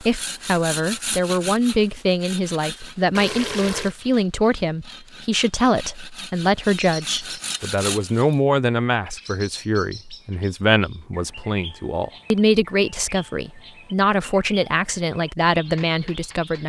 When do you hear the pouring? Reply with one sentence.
You can hear the pouring from 3.1 to 4.0 s.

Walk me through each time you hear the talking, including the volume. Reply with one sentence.
The talking can be heard from 0.0 to 16.6 s, at a steady volume.